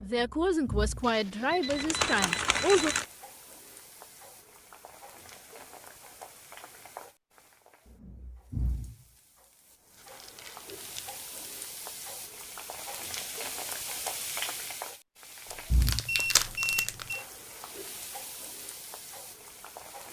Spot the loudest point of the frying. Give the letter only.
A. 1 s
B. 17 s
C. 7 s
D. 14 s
D.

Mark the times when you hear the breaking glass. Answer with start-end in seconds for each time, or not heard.
not heard.